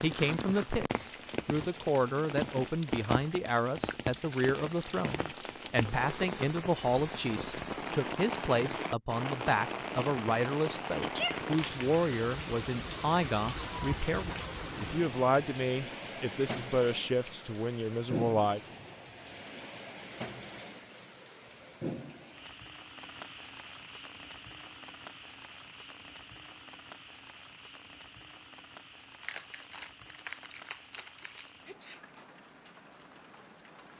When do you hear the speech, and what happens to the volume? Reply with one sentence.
The speech can be heard from 0.0 to 18.6 s, at a steady volume.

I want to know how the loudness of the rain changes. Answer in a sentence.
The volume of the rain goes down.